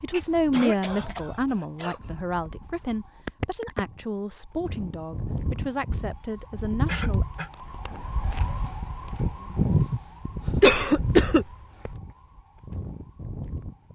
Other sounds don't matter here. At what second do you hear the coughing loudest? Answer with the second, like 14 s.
11 s.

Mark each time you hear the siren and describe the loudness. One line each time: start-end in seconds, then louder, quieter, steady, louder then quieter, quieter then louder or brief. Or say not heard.
0.0-13.9 louder then quieter.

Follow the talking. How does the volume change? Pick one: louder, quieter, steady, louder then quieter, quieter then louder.
quieter.